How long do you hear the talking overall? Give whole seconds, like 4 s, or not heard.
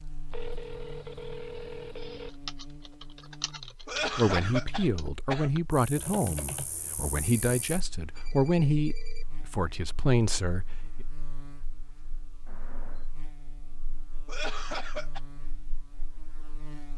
7 s.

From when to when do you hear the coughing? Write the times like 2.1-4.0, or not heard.
3.9-5.5, 14.2-15.2.